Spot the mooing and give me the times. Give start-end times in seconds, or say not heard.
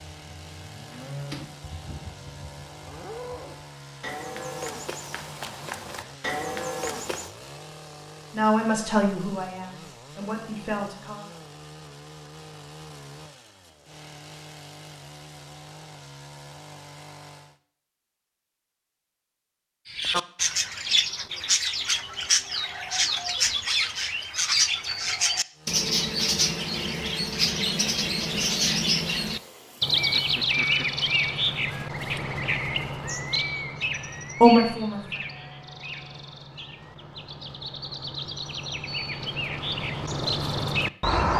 0.0-7.3.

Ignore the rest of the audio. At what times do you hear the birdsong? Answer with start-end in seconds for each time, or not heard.
19.9-41.3.